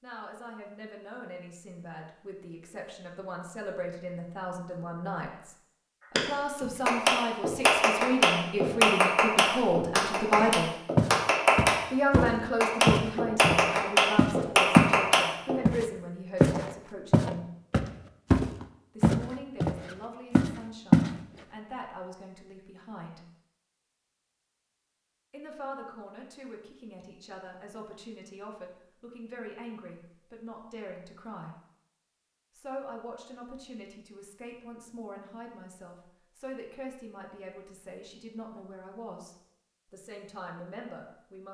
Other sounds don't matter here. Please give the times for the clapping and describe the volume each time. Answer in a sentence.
You can hear the clapping from 6.2 to 15.6 s, at a steady volume.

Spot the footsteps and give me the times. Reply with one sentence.
The footsteps can be heard from 10.3 to 14.9 s and from 15.7 to 21.1 s.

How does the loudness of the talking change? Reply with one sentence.
The volume of the talking goes up, then down.